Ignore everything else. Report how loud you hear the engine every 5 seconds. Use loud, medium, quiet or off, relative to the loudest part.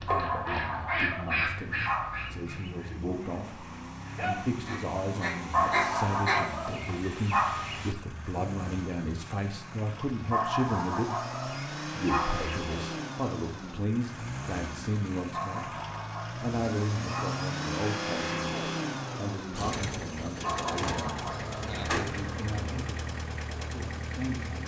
medium, medium, loud, loud, loud.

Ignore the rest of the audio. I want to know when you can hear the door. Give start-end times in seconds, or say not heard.
20.8-22.1.